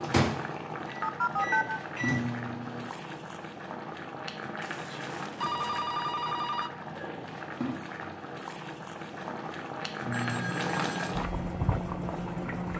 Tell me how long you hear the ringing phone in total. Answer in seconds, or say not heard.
4 s.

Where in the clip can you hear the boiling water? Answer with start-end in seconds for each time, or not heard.
0.0-12.7.